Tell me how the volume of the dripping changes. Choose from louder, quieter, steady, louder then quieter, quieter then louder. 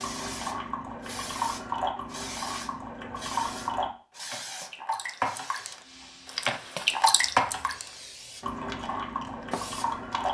louder then quieter.